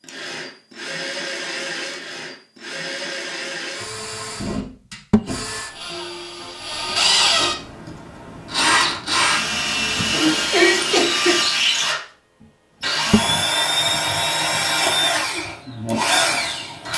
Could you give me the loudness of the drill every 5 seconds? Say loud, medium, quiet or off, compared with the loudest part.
medium, loud, loud, loud.